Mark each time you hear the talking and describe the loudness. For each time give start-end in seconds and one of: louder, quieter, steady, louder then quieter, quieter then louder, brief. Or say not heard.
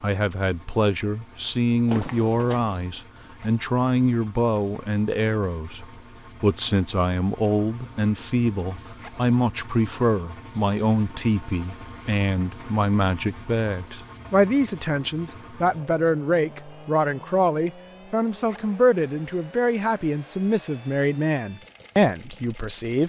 0.0-23.0 steady.